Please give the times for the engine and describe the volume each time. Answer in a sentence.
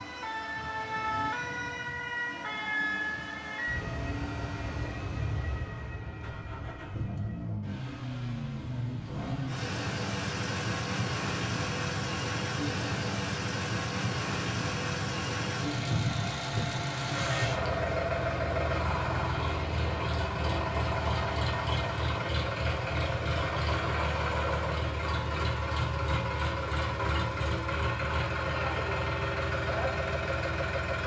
You can hear the engine from 0.0 to 31.0 s, getting louder.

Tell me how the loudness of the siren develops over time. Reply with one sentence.
The volume of the siren goes down.